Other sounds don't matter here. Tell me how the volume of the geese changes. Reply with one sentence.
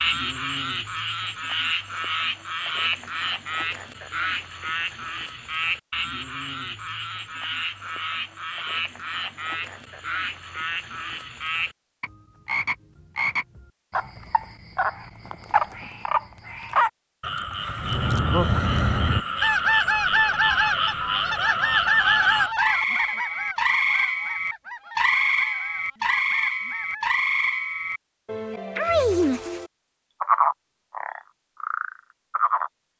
The volume of the geese goes down.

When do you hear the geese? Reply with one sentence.
The geese can be heard from 17.8 to 27.1 s.